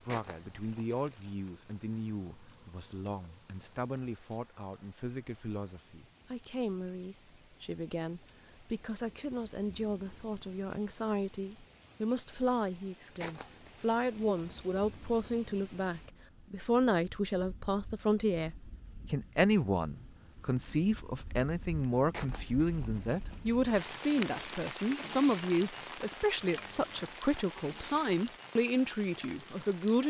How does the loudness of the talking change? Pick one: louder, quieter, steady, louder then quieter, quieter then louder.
louder.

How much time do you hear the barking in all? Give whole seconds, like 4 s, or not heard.
not heard.